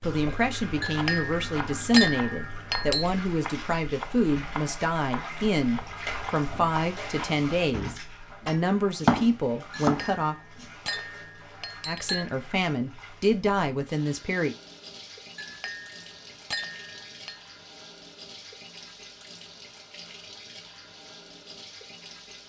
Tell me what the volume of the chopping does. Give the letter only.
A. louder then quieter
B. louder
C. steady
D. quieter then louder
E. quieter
B.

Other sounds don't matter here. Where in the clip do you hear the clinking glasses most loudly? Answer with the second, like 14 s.
2 s.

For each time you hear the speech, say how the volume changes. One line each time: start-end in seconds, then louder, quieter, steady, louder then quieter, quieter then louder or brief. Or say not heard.
0.0-10.3 steady
11.8-14.6 brief.